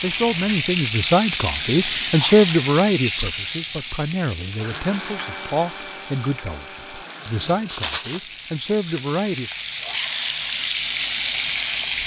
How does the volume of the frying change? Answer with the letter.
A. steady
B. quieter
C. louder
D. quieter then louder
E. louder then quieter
D.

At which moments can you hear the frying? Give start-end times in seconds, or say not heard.
0.0-12.0.